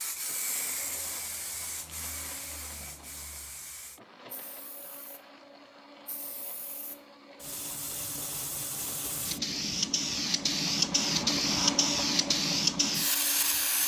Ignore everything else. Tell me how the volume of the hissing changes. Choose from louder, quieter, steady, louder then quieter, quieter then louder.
quieter then louder.